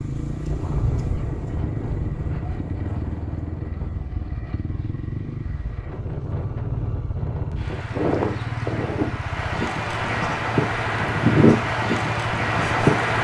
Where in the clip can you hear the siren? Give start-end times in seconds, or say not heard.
not heard.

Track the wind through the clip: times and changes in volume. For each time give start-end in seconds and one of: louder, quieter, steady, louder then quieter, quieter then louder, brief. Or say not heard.
0.0-13.1 quieter then louder.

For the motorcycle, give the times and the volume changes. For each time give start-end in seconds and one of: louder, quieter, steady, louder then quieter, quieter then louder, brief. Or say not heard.
0.0-13.1 steady.